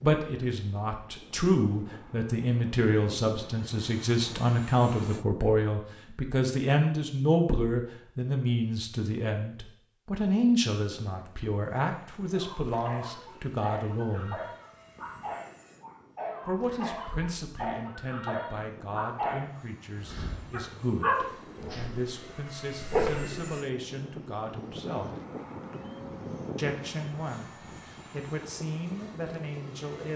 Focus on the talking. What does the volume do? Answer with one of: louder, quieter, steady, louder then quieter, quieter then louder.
quieter.